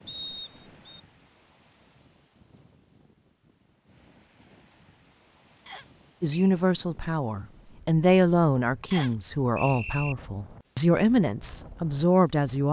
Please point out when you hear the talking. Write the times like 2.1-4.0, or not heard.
6.2-12.6.